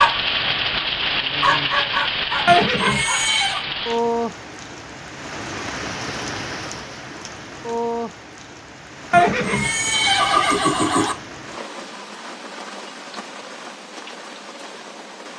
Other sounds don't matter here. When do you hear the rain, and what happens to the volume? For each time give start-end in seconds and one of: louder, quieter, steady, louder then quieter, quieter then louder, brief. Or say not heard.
0.0-15.3 quieter.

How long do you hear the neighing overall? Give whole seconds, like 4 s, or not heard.
3 s.